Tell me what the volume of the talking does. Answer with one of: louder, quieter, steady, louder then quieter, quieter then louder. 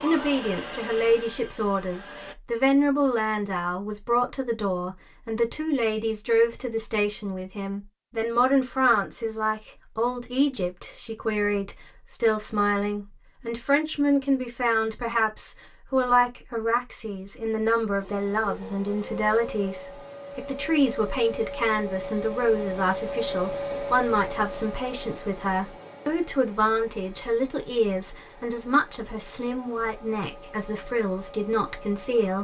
steady.